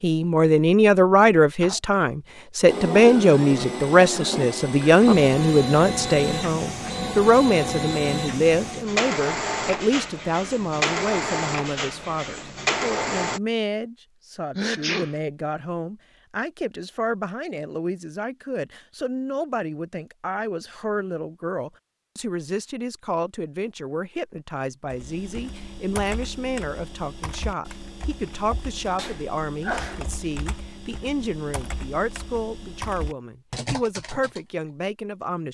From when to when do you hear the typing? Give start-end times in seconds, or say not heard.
24.9-34.4.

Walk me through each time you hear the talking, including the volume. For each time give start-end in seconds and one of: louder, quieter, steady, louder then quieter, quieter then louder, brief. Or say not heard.
0.0-35.4 quieter.